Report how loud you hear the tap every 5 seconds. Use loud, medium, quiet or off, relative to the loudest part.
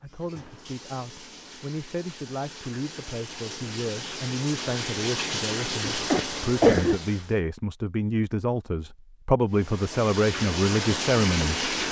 medium, loud, loud.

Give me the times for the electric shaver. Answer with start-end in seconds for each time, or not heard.
not heard.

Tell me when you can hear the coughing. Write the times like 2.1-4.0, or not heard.
5.9-7.0.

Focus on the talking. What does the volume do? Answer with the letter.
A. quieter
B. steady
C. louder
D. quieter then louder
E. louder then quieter
C.